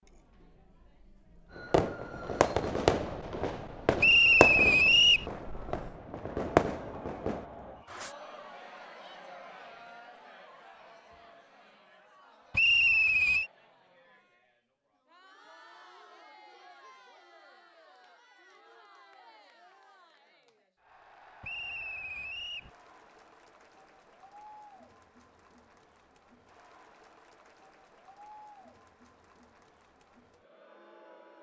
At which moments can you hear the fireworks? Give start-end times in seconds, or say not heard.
1.5-8.2.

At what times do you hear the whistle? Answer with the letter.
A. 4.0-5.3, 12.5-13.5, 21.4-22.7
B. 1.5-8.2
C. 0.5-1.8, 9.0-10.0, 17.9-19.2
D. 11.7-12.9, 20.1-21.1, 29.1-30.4
A.